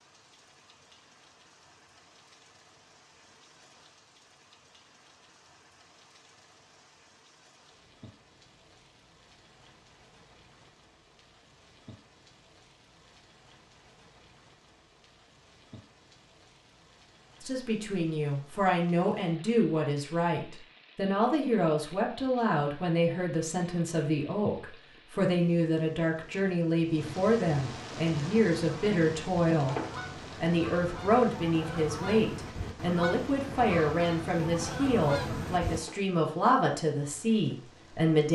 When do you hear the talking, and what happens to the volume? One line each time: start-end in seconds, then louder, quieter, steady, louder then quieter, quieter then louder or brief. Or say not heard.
17.4-29.8 steady
30.4-38.2 steady.